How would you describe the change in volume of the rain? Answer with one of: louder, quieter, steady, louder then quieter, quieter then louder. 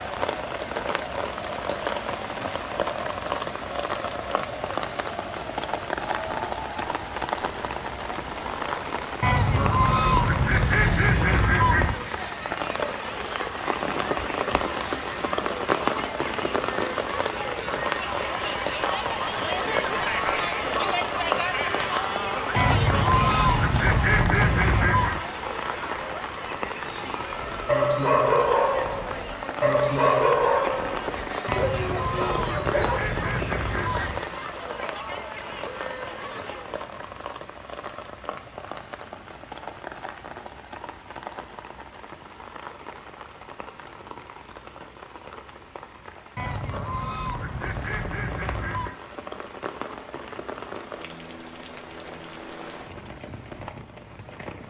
quieter.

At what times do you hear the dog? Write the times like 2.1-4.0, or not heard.
27.1-33.2.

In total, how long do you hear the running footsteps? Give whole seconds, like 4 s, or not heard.
not heard.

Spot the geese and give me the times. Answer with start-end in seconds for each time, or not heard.
9.2-12.0, 22.6-25.2, 31.4-34.2, 46.4-49.0.